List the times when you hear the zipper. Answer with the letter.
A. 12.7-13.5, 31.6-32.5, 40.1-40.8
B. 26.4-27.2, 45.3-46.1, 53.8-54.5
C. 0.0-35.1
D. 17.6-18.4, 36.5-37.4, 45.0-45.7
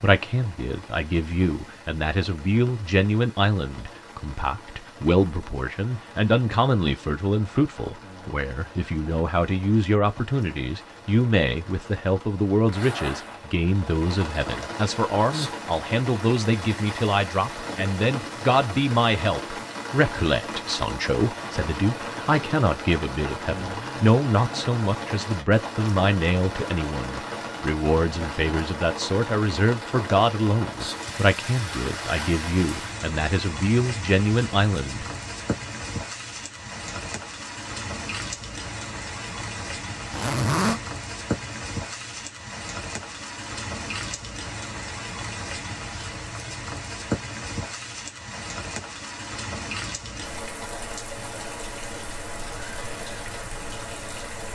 A.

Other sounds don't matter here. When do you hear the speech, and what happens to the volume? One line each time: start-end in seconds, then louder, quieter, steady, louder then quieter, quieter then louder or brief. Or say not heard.
0.0-35.1 steady.